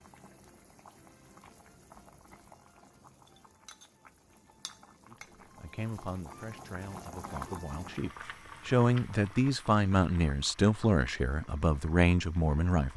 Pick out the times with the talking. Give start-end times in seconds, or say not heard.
5.1-12.9.